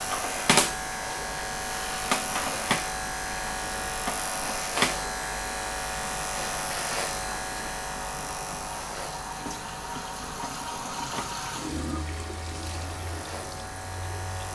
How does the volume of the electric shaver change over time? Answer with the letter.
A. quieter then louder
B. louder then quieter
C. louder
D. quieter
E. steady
D.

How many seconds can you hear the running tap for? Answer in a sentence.
The running tap can be heard for 14 seconds in total.